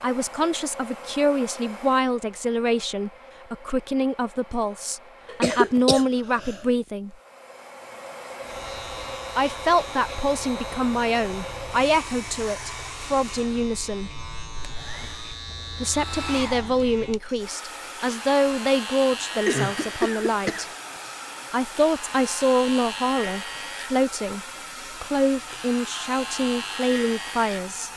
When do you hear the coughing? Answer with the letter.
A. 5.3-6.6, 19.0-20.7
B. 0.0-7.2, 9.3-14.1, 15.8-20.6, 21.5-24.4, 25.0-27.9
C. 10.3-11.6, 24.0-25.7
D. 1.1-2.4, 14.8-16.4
A.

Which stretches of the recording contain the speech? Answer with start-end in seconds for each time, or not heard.
0.0-7.2, 9.3-14.1, 15.8-20.6, 21.5-24.4, 25.0-27.9.